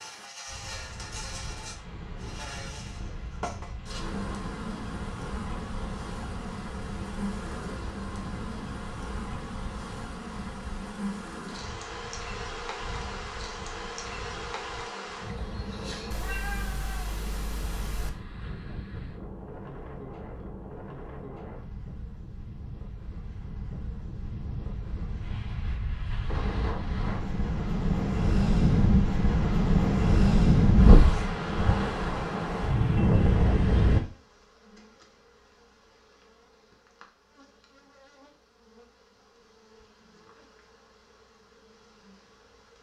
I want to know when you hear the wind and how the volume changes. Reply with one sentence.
You can hear the wind from 0.0 to 34.0 s, getting louder.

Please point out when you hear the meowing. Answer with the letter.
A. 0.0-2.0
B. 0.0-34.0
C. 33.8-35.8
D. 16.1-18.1
D.